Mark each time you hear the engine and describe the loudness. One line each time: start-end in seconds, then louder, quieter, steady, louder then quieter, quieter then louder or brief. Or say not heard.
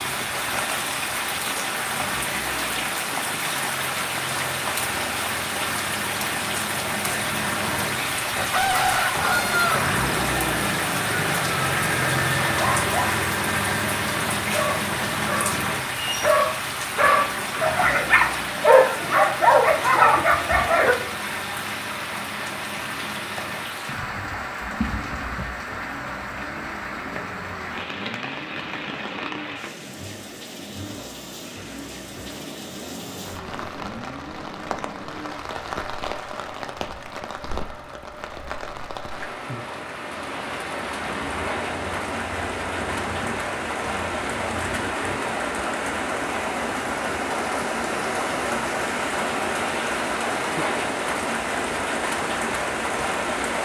0.0-45.2 louder then quieter.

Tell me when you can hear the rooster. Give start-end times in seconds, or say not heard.
8.5-9.8.